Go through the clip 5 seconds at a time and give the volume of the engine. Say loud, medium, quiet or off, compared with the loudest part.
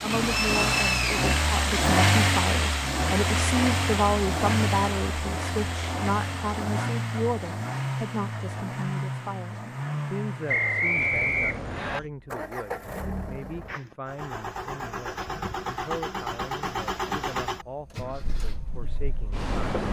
loud, medium, medium, medium.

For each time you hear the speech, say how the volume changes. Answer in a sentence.
You can hear the speech from 0.0 to 19.8 s, getting quieter.